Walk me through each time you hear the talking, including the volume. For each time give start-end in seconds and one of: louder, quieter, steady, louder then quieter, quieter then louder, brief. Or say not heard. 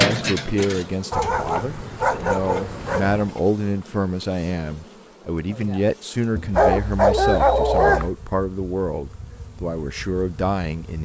0.0-11.0 steady.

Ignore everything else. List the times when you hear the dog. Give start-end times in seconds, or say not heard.
1.1-3.3, 6.5-8.2.